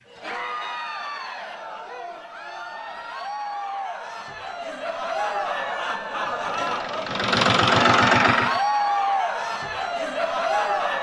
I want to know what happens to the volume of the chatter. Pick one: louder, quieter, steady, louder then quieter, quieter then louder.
louder.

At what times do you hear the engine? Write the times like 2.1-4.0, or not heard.
6.3-8.6.